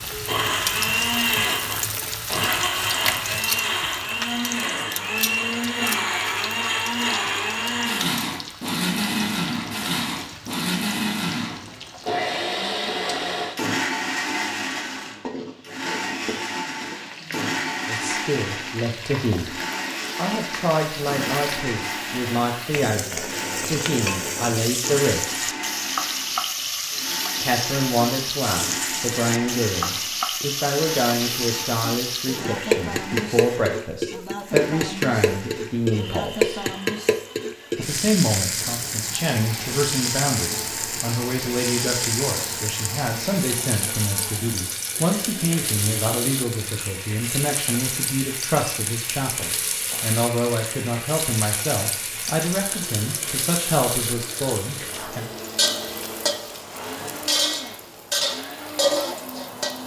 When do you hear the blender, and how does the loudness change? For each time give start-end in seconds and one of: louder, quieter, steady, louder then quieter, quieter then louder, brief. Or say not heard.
0.1-59.8 quieter.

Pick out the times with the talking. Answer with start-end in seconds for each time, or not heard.
17.9-19.5, 20.1-25.4, 27.4-36.7, 37.8-55.2.